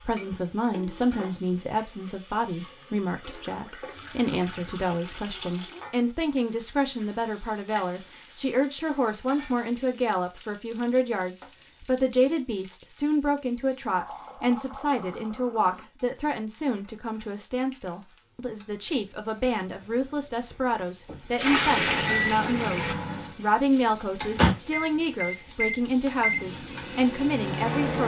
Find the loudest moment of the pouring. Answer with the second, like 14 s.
22 s.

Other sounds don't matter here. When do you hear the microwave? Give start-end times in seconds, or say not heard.
21.7-28.0.